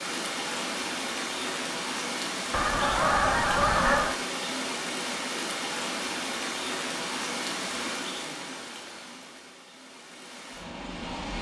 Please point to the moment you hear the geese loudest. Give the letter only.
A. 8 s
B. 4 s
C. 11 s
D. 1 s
B.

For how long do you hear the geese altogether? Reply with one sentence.
The geese can be heard for 2 seconds in total.